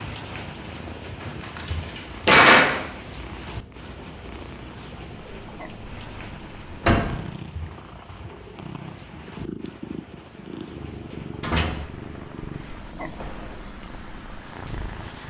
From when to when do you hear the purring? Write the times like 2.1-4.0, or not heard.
0.1-15.2.